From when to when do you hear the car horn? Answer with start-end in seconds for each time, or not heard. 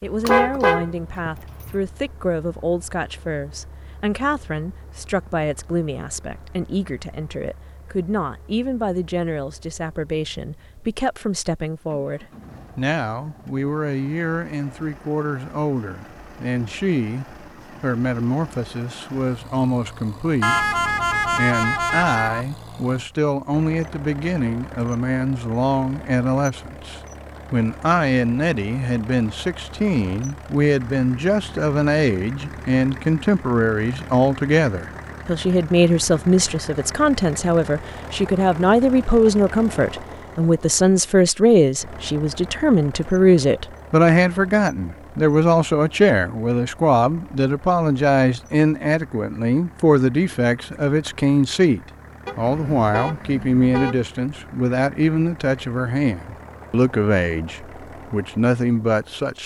0.2-1.8, 20.4-22.4, 52.2-54.0.